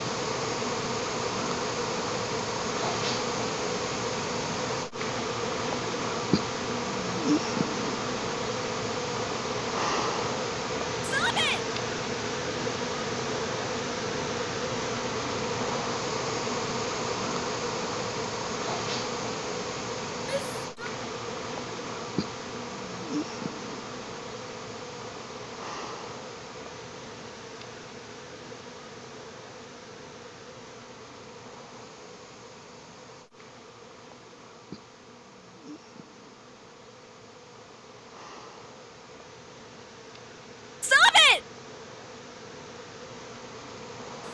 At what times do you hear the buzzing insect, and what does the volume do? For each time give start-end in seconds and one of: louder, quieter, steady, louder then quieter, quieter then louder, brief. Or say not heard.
0.0-44.2 quieter.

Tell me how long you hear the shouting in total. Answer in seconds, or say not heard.
2 s.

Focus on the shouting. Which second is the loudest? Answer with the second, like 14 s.
41 s.